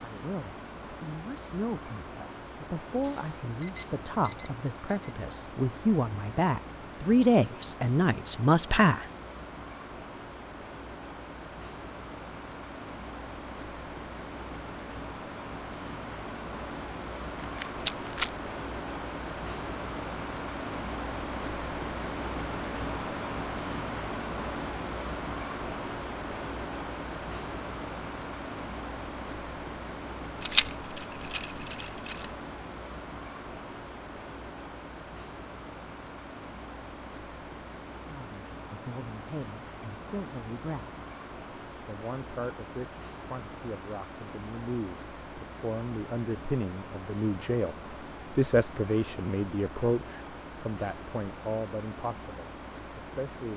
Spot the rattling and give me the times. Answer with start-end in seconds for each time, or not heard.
17.4-18.3, 30.4-32.3.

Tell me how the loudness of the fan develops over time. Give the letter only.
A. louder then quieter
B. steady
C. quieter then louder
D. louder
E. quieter
A.